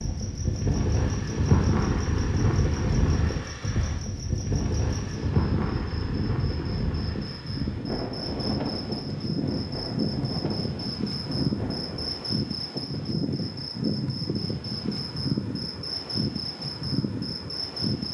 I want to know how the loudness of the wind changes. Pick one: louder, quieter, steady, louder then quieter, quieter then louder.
quieter.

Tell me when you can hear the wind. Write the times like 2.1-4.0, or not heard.
0.0-12.2.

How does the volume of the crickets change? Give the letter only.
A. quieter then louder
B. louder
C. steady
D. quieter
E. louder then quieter
B.